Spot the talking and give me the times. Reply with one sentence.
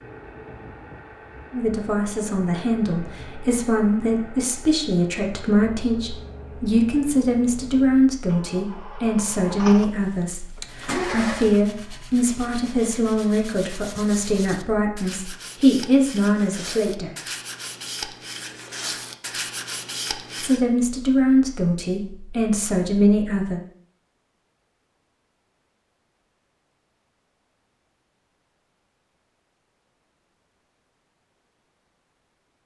You can hear the talking from 1.5 to 17.1 s and from 20.4 to 23.6 s.